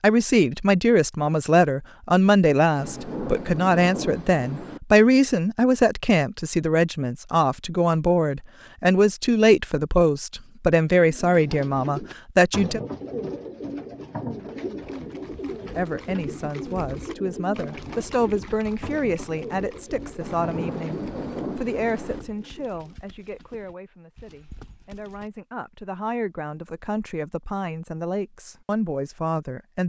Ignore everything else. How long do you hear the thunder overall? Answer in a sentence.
You can hear the thunder for 4 seconds altogether.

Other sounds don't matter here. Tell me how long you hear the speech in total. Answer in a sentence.
You can hear the speech for 27 seconds altogether.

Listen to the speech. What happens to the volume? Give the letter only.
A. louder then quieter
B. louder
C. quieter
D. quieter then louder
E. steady
C.